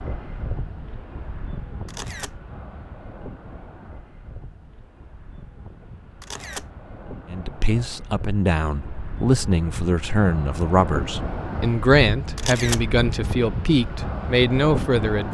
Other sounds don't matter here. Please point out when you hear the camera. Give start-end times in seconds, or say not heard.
1.9-2.4, 6.2-6.7, 12.3-12.8.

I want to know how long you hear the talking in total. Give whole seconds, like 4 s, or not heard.
8 s.